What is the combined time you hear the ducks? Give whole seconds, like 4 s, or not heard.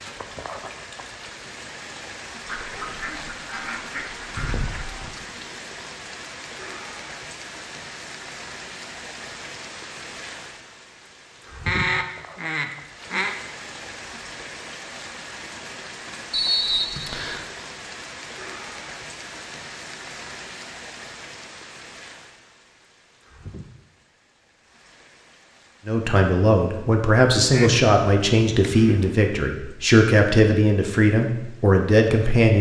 6 s.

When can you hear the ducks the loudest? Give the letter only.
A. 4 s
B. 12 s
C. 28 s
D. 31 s
B.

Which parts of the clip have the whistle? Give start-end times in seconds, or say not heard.
16.3-17.4.